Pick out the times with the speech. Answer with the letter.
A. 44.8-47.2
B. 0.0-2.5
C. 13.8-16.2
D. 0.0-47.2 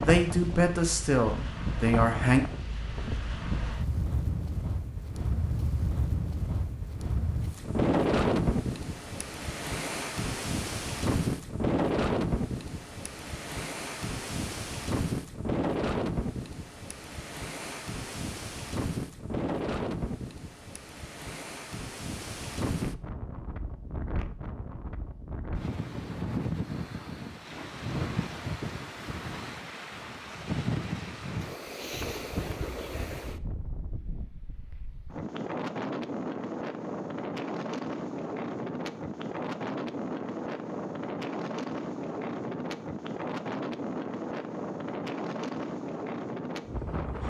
B.